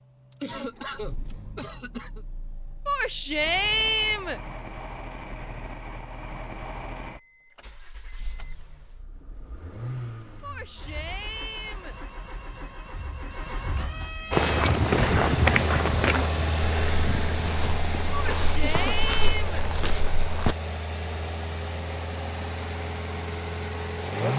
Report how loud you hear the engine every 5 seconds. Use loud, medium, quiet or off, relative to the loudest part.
quiet, medium, medium, loud, loud.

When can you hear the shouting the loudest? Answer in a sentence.
The volume of the shouting peaks at 4 seconds.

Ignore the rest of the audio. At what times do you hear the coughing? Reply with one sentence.
The coughing can be heard from 0.4 to 2.2 s and from 18.6 to 19.2 s.